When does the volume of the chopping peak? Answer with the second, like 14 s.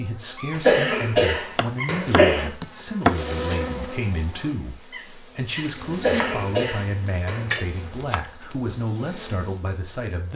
3 s.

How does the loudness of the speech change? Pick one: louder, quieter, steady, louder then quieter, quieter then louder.
steady.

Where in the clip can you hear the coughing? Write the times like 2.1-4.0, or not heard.
0.6-2.5, 5.9-7.6.